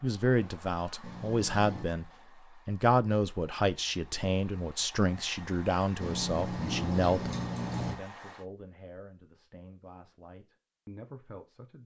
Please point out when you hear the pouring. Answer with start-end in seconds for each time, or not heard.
1.0-1.9, 6.0-8.0.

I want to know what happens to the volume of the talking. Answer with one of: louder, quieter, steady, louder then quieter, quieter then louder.
quieter.